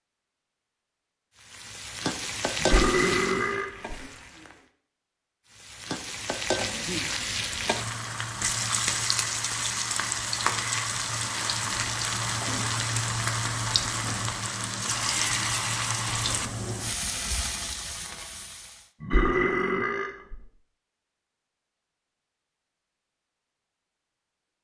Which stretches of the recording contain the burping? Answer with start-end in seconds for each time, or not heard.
2.6-3.7, 19.0-20.4.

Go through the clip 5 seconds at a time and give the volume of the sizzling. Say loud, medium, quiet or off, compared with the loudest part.
loud, loud, loud, loud, off.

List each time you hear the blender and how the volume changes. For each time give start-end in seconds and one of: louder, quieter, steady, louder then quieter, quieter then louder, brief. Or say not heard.
not heard.